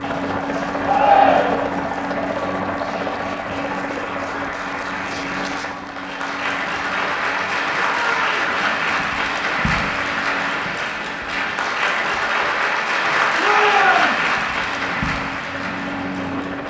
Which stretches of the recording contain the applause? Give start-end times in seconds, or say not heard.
0.0-16.6.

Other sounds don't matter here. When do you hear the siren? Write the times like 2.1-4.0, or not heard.
not heard.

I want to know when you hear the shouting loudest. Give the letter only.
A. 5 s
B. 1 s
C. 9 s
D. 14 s
B.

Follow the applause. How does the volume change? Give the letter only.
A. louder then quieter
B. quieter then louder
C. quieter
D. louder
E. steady
D.